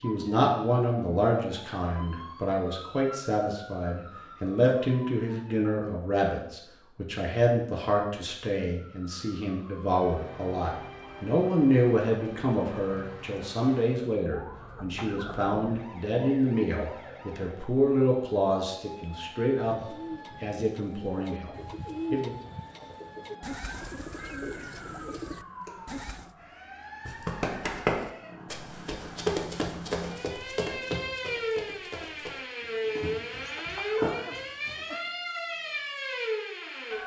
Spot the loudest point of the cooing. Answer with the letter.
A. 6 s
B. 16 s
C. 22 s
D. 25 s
C.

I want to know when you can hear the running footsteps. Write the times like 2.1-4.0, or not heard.
27.1-35.0.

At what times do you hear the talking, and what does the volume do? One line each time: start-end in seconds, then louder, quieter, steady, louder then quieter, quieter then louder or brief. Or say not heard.
0.0-22.3 steady.